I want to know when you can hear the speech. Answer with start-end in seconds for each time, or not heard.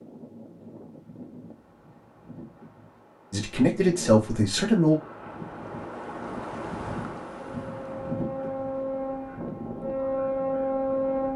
3.3-5.0.